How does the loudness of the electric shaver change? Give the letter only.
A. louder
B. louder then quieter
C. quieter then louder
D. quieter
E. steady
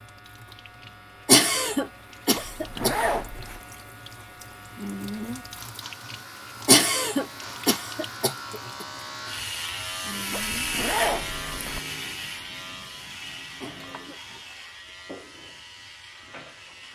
B.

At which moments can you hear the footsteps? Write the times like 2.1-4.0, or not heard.
not heard.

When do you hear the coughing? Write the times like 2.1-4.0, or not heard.
1.2-3.0, 6.7-8.8, 13.6-14.2.